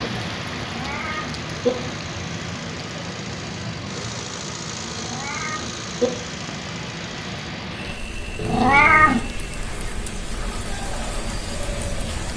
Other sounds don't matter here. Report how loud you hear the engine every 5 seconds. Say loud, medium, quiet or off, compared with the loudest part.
loud, loud, medium.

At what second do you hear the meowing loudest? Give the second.
9 s.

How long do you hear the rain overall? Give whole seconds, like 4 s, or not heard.
12 s.